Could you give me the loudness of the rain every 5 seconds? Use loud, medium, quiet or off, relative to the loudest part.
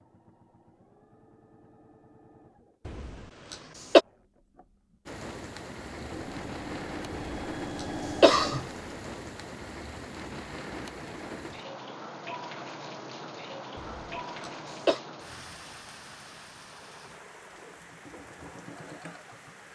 off, loud, loud, medium.